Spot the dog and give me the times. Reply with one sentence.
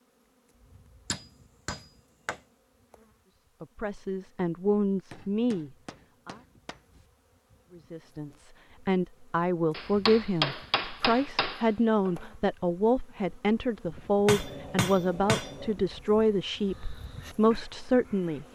You can't hear the dog here.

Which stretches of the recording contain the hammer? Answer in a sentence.
The hammer can be heard from 1.1 to 2.4 s, from 5.1 to 7.0 s, from 9.7 to 12.2 s and from 14.2 to 15.8 s.